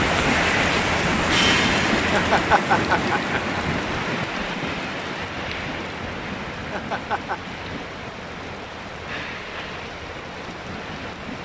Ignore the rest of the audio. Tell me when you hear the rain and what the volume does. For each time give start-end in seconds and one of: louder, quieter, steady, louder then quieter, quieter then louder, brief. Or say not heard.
0.0-11.4 quieter.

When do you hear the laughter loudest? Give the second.
3 s.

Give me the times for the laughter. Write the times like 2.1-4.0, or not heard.
1.9-3.6, 6.5-7.4.